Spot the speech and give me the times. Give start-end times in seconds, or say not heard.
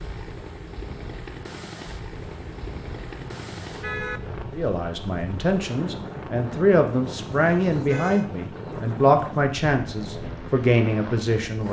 4.5-11.6.